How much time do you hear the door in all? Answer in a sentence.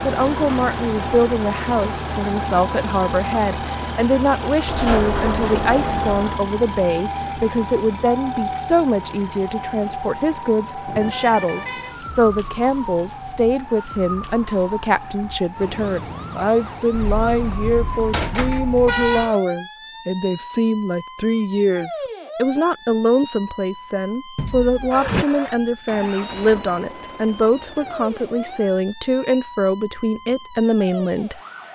You can hear the door for 3 seconds altogether.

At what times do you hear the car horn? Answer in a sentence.
You can hear the car horn from 10.8 to 11.9 s and from 16.9 to 19.4 s.